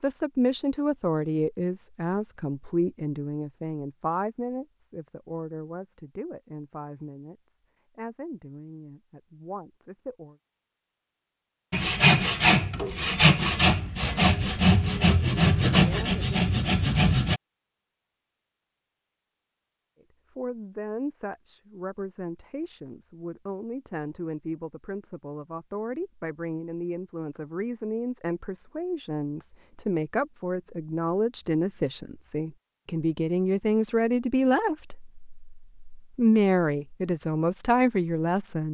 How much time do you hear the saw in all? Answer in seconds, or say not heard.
6 s.